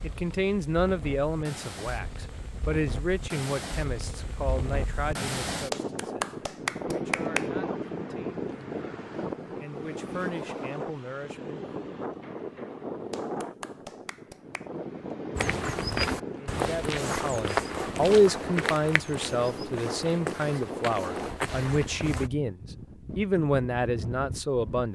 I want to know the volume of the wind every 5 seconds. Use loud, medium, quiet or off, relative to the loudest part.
medium, loud, loud, loud, medium.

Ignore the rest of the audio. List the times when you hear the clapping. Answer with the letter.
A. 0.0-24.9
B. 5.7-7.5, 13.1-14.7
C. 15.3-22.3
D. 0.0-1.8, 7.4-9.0
B.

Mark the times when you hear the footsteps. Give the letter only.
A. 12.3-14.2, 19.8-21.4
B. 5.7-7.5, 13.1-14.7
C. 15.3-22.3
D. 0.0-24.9
C.